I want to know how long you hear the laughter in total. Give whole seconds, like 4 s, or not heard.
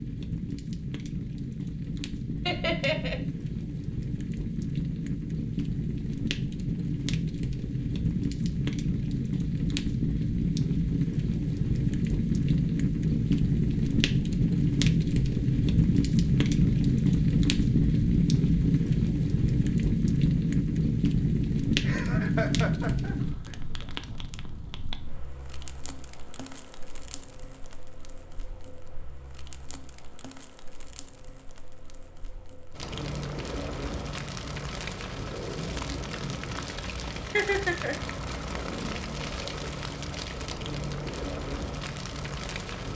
3 s.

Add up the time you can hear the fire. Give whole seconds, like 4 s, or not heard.
43 s.